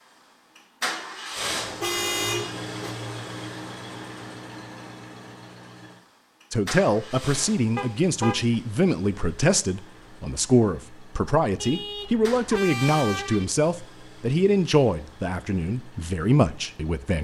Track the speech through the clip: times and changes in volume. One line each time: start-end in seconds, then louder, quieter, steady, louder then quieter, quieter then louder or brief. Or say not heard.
6.5-17.1 steady.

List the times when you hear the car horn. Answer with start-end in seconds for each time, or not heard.
1.6-3.0, 7.8-8.6, 11.6-13.4.